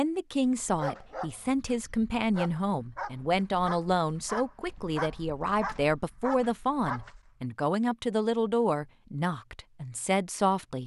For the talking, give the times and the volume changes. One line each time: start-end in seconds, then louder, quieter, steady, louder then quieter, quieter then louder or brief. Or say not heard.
0.0-10.8 steady.